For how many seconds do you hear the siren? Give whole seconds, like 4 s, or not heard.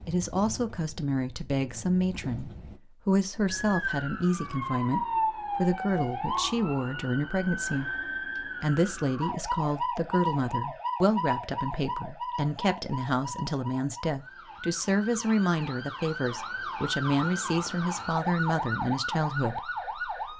17 s.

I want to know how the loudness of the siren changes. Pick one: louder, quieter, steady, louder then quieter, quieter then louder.
quieter then louder.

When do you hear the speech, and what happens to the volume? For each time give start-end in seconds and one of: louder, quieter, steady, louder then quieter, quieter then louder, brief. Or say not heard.
0.1-20.3 steady.